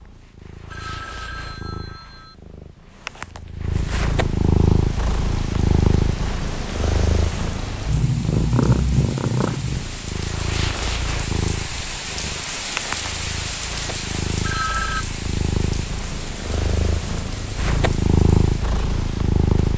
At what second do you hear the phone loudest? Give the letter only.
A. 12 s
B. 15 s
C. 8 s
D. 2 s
B.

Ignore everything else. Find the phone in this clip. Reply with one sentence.
The phone can be heard from 0.7 to 2.4 s and from 14.4 to 15.1 s.